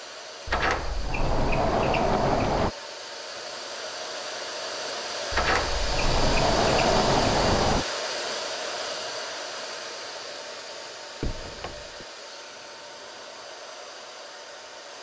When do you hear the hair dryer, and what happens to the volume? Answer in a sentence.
You can hear the hair dryer from 0.0 to 14.9 s, getting louder then quieter.